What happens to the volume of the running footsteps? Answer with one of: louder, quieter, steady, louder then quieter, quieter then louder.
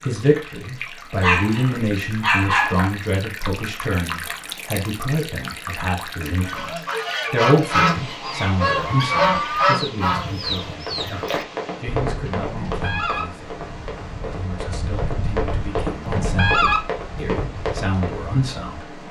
quieter then louder.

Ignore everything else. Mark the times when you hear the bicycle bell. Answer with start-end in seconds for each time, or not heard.
not heard.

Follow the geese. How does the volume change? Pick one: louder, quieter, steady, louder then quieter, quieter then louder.
quieter then louder.